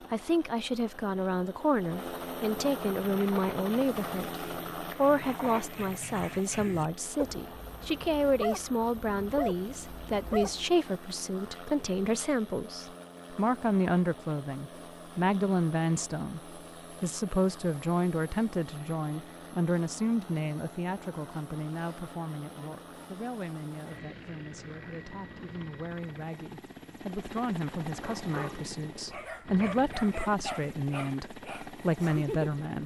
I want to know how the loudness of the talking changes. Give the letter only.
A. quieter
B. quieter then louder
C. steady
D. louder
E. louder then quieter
B.